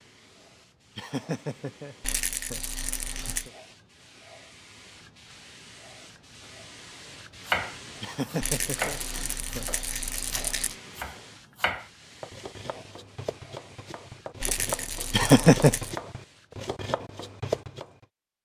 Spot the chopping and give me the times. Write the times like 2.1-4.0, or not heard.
7.5-17.9.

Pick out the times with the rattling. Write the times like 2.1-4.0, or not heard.
2.0-3.5, 8.4-10.8, 14.4-15.9.